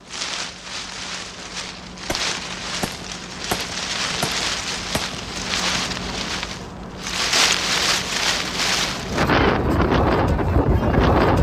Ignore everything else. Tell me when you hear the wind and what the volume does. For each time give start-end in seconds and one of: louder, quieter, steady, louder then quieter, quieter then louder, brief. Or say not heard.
0.0-11.3 louder.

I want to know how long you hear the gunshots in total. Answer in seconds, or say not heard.
3 s.